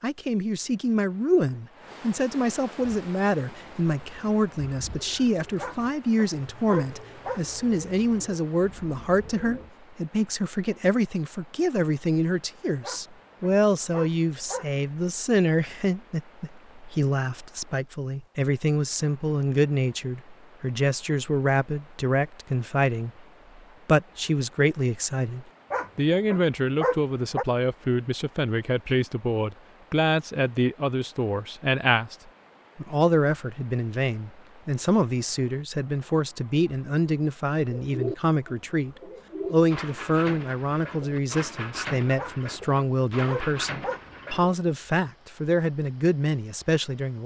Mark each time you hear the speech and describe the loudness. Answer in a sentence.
You can hear the speech from 0.0 to 23.1 s, at a steady volume; from 23.9 to 32.1 s, at a steady volume; and from 32.8 to 47.2 s, at a steady volume.